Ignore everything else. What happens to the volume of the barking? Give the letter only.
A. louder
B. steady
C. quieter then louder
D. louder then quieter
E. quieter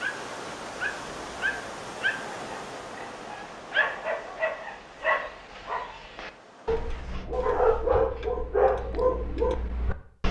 A.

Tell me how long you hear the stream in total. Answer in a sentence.
The stream can be heard for 8 seconds in total.